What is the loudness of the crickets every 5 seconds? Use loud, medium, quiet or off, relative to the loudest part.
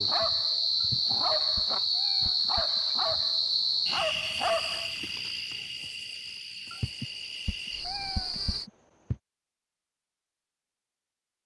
loud, medium, off.